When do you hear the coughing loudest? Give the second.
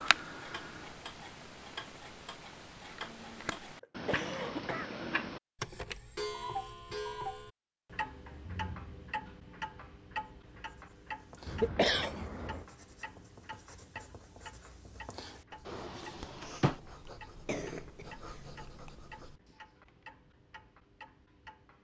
12 s.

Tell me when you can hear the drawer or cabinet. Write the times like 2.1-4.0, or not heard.
15.7-16.8.